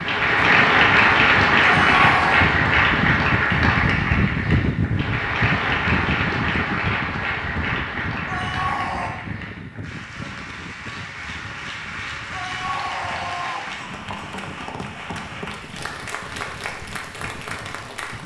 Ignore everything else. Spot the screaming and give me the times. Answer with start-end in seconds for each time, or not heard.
1.6-2.5, 8.2-9.1, 12.3-13.7.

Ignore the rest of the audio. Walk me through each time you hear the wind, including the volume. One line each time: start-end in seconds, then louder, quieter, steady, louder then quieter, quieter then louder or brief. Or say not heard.
0.0-18.2 quieter.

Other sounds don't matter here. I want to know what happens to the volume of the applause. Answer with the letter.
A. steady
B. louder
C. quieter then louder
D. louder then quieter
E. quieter
E.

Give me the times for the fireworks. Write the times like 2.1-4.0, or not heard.
not heard.